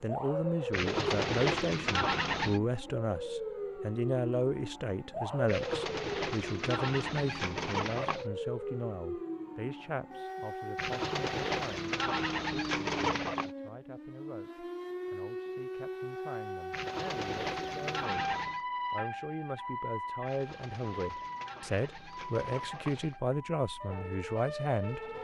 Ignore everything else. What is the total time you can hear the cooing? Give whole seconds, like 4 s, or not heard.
12 s.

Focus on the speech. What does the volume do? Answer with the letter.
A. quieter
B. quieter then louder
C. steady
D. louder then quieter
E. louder
B.